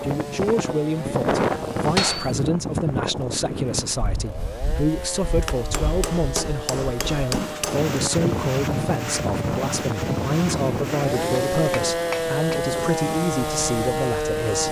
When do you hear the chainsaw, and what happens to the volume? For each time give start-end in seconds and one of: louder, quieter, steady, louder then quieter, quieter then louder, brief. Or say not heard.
0.0-14.6 louder.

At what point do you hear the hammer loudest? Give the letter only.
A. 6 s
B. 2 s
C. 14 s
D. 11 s
B.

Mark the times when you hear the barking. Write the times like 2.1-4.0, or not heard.
not heard.